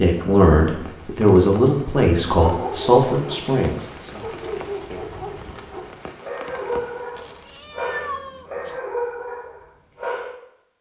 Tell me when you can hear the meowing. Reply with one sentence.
The meowing can be heard from 7.2 to 8.8 s.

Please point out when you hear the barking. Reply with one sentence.
The barking can be heard from 2.3 to 10.3 s.